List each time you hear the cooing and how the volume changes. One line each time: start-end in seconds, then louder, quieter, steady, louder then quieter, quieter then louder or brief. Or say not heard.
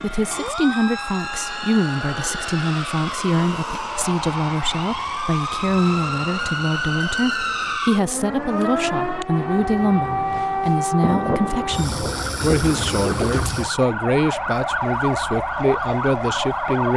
not heard.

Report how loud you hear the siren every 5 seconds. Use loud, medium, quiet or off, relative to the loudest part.
medium, loud, loud, loud.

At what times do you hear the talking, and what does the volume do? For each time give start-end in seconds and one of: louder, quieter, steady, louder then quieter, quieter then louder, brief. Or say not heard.
0.0-16.9 steady.